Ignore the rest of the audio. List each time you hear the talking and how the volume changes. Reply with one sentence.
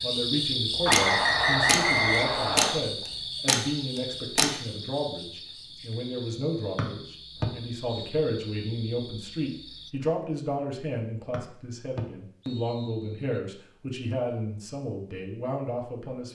The talking can be heard from 0.0 to 16.3 s, at a steady volume.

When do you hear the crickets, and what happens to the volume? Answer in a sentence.
You can hear the crickets from 0.0 to 9.9 s, getting quieter.